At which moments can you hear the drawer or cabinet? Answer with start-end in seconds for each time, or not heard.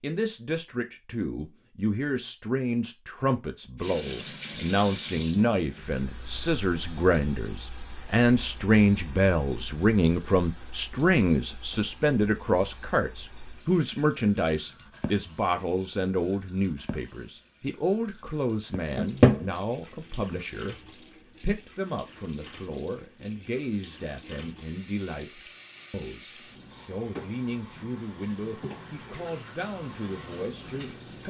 18.9-19.4.